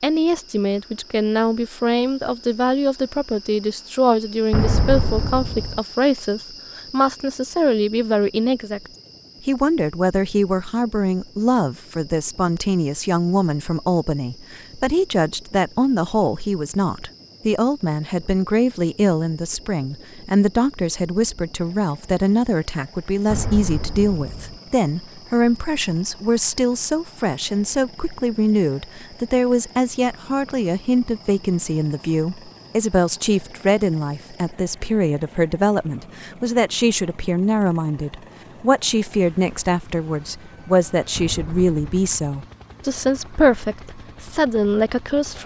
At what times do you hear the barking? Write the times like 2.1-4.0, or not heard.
not heard.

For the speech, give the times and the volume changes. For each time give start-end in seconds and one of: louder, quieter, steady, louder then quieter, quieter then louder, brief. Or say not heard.
0.0-45.4 steady.